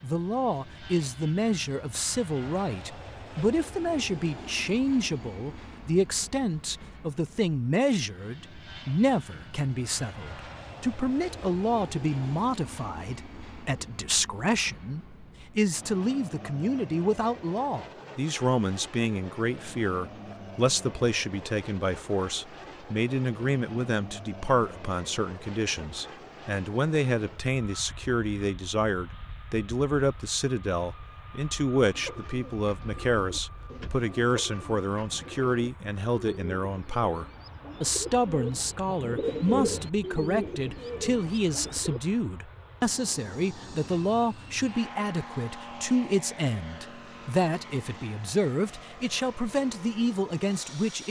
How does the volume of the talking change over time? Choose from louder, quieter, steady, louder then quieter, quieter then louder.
steady.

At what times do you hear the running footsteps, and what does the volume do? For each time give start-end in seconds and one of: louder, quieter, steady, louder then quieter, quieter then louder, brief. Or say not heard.
not heard.